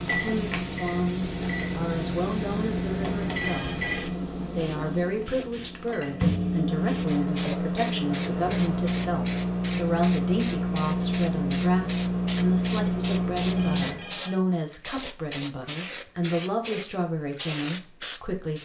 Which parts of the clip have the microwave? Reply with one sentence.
The microwave can be heard from 0.0 to 14.2 s.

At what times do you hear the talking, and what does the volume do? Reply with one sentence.
The talking can be heard from 0.0 to 18.6 s, at a steady volume.